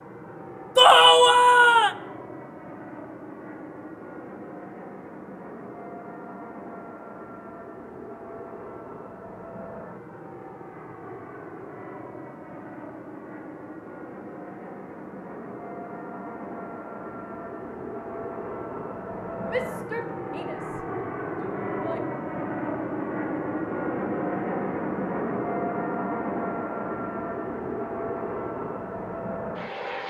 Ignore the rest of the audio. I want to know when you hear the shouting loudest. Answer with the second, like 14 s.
1 s.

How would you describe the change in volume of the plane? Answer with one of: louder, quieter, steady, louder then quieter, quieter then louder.
louder.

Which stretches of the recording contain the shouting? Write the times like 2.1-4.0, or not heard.
0.8-1.9, 19.4-22.1.